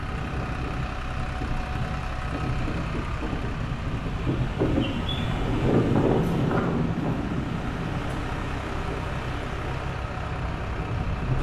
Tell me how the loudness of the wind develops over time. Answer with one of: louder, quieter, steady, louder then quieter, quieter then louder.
louder then quieter.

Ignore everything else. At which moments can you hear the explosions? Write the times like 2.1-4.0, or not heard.
5.2-8.2.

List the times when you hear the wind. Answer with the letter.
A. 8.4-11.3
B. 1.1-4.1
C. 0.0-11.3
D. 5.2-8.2
C.